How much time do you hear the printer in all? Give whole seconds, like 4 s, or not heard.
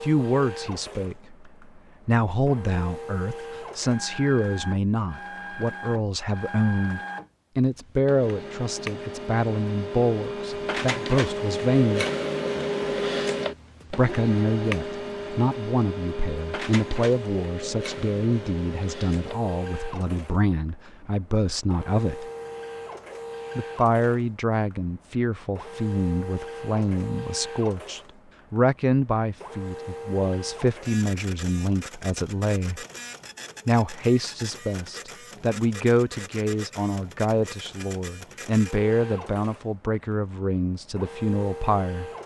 42 s.